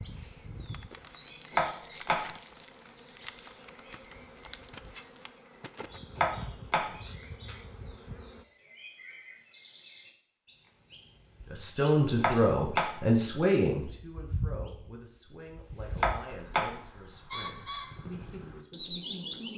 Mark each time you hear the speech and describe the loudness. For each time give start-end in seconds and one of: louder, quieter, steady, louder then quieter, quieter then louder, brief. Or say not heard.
11.5-19.5 quieter.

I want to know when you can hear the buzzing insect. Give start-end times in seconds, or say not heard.
0.0-8.4.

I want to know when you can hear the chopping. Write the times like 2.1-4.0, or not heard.
1.5-2.2, 6.2-6.9, 12.2-12.9, 15.9-16.7.